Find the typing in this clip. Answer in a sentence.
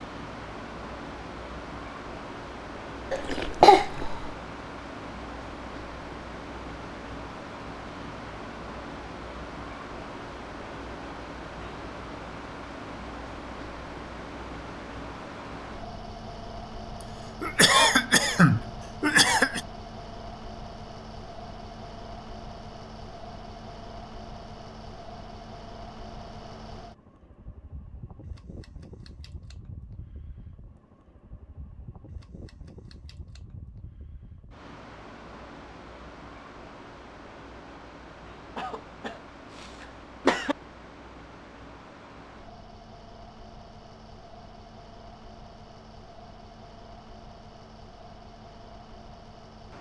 You can't hear the typing here.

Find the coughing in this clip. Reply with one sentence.
You can hear the coughing from 3.1 to 4.3 s, from 17.0 to 19.6 s and from 38.5 to 40.5 s.